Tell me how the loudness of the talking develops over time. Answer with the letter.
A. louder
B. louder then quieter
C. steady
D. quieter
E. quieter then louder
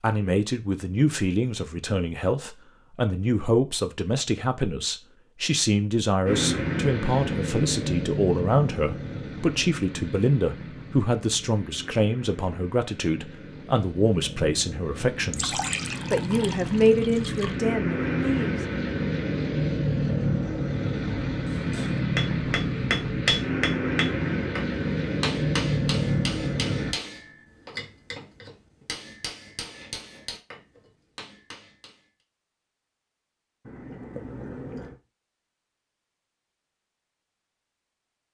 C.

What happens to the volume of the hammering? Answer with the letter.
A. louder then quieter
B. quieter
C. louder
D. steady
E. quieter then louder
B.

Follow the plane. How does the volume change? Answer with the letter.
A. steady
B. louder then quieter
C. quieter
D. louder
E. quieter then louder
E.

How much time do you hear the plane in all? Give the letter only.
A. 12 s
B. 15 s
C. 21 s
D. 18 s
C.